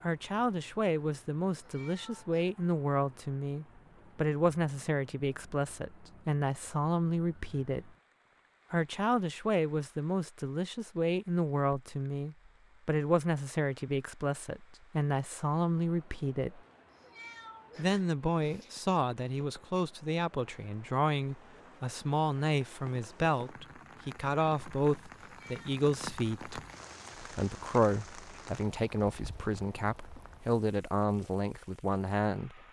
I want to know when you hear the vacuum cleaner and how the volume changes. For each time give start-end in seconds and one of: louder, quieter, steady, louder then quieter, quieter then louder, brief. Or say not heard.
not heard.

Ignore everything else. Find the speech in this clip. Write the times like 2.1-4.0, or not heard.
0.0-7.9, 8.7-16.6, 17.8-26.6, 27.2-32.6.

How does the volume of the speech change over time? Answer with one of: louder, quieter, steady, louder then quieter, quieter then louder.
steady.